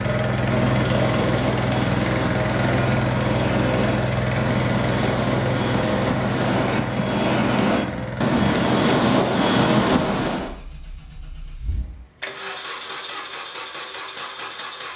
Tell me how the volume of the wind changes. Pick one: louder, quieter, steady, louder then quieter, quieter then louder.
louder.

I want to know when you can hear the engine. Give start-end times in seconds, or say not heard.
0.0-14.9.